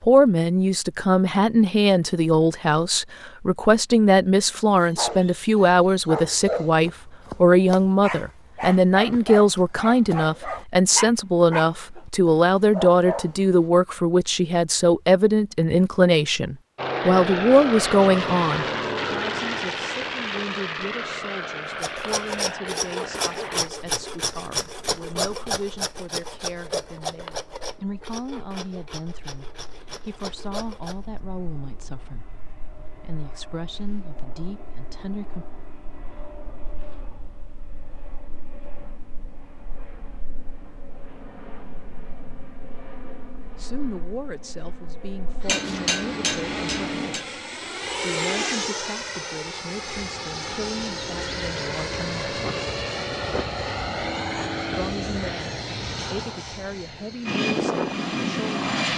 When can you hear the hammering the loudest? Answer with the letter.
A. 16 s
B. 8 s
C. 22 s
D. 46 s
D.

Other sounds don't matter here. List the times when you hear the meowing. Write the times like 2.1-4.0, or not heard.
not heard.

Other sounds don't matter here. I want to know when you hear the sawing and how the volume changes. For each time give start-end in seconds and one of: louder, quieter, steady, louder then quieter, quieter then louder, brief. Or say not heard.
21.8-30.9 quieter.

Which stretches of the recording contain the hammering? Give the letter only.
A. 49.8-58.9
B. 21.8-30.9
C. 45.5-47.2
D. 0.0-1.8
C.